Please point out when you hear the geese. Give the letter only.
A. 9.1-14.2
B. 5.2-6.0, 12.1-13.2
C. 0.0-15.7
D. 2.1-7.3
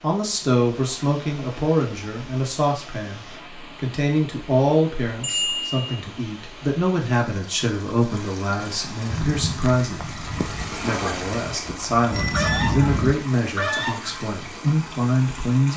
A.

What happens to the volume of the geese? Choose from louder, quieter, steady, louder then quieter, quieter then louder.
quieter then louder.